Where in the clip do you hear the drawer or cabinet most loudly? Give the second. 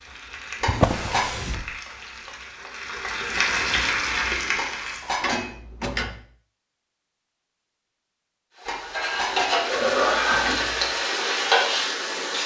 1 s.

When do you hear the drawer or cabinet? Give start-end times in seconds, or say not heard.
0.7-1.7, 5.2-6.2, 9.7-10.9.